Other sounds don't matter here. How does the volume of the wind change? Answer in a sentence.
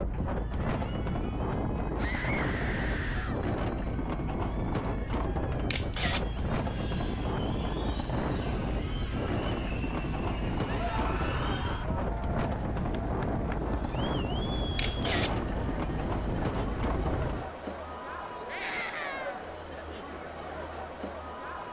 The volume of the wind stays about the same.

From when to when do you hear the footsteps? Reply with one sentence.
You can't hear the footsteps here.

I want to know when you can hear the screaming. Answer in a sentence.
You can hear the screaming from 1.9 to 3.5 s, from 10.8 to 12.0 s and from 18.4 to 19.4 s.